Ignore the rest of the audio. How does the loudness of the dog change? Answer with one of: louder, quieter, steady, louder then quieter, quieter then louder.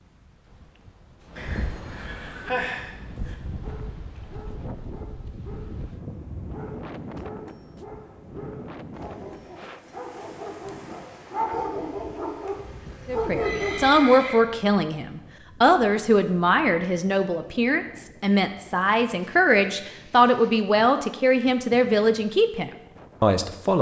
louder.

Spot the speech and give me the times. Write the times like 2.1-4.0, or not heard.
13.1-23.7.